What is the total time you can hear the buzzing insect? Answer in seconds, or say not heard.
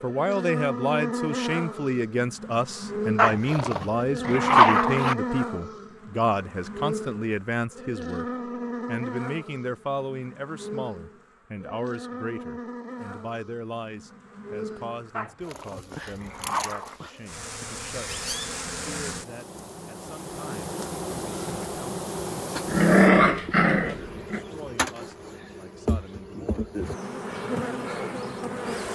29 s.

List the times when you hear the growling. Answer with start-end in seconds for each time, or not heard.
3.1-5.2, 15.2-16.9, 22.6-24.4.